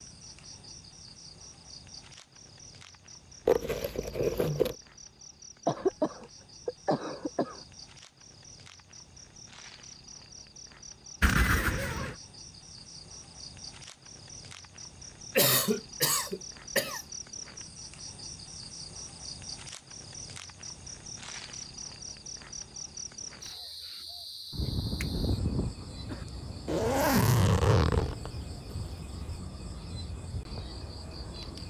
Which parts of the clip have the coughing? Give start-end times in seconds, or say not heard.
5.7-7.6, 15.3-17.0, 24.5-26.2.